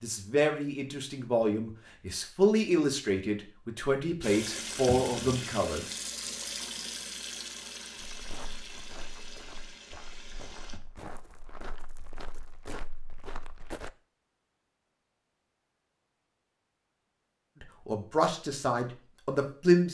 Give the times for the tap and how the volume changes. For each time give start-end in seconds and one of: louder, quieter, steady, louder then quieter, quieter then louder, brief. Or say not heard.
4.2-10.8 quieter.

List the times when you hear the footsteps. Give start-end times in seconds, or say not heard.
8.0-13.9.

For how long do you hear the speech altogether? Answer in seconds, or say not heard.
8 s.